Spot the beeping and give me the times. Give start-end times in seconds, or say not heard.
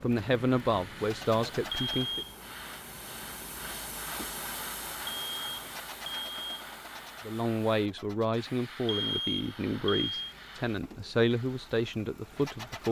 1.7-2.4, 5.0-6.5, 8.8-10.3.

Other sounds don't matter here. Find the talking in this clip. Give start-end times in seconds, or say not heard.
0.0-2.2, 7.2-12.8.